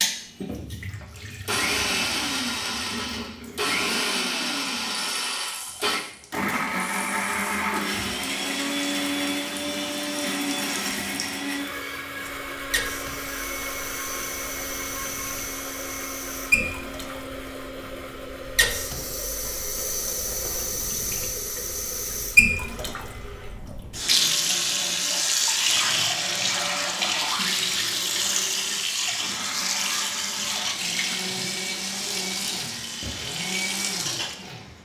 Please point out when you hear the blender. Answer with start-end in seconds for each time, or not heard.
0.0-34.8.